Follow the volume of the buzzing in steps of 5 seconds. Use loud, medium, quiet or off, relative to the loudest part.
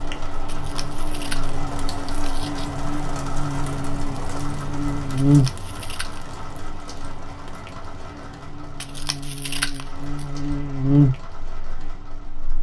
medium, loud, loud.